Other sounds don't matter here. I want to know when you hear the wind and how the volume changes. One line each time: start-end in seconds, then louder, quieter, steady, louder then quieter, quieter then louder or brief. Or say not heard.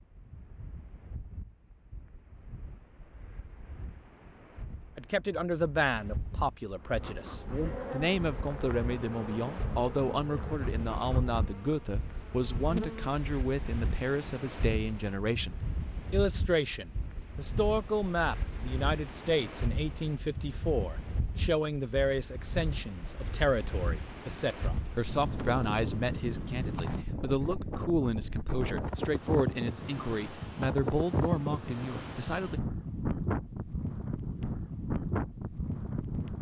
0.0-36.3 louder.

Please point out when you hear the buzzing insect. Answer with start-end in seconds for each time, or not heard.
6.8-13.2.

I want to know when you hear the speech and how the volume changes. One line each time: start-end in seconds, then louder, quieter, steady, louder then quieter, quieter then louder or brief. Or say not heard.
5.0-32.6 steady.